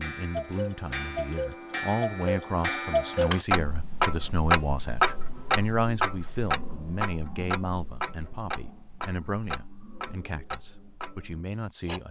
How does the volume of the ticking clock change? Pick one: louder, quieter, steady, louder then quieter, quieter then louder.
louder then quieter.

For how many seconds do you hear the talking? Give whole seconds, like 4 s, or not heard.
12 s.